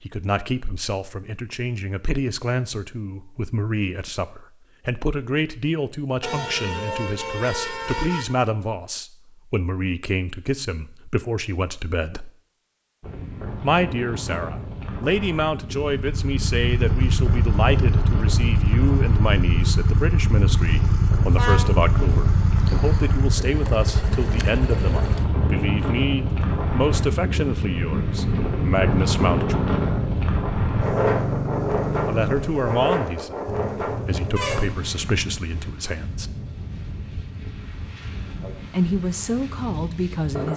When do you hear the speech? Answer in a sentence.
You can hear the speech from 0.0 to 12.3 s, from 13.6 to 29.7 s, from 32.0 to 36.3 s and from 38.7 to 40.5 s.